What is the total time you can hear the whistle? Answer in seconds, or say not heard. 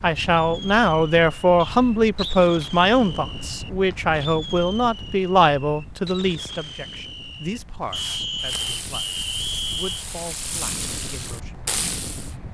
3 s.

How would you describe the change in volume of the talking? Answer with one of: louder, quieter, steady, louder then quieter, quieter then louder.
quieter.